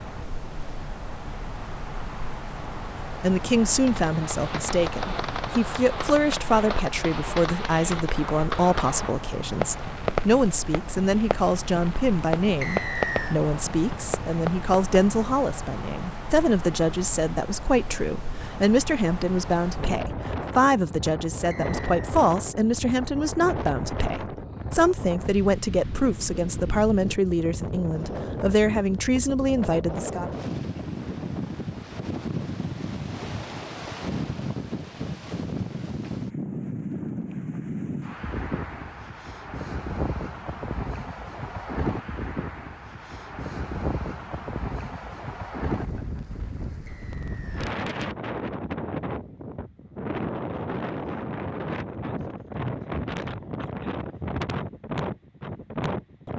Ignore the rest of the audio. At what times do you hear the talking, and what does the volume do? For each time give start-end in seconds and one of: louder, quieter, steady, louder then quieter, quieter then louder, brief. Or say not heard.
3.0-30.3 steady.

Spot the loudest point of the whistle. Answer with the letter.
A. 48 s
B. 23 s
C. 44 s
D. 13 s
D.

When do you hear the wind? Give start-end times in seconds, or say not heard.
0.0-56.3.